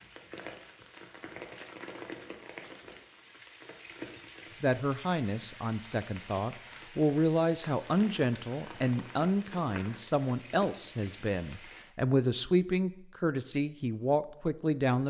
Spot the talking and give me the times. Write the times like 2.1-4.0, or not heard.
4.6-15.0.